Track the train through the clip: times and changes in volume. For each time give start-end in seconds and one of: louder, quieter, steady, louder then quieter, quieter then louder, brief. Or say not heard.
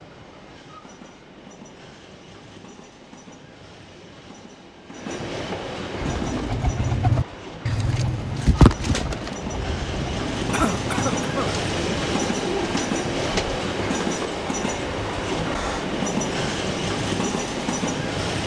0.0-18.4 louder.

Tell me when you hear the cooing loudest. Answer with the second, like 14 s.
9 s.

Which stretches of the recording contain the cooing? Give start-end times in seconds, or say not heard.
6.0-13.6.